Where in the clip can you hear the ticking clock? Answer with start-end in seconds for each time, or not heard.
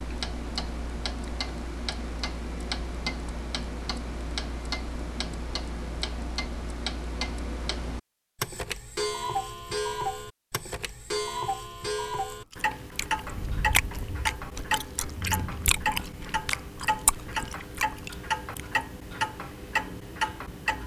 0.0-20.8.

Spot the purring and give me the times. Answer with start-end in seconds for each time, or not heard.
not heard.